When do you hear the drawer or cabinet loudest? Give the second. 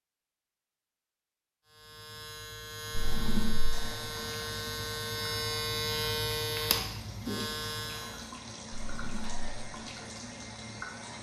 3 s.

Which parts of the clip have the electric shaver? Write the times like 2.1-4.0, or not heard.
1.6-8.3.